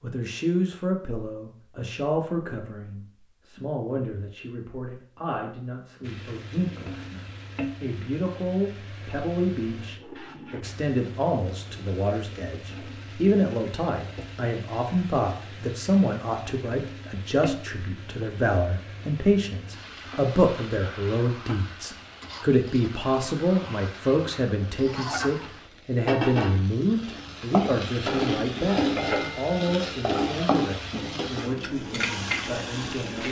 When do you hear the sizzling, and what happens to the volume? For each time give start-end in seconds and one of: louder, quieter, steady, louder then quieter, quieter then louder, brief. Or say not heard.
6.0-33.2 louder.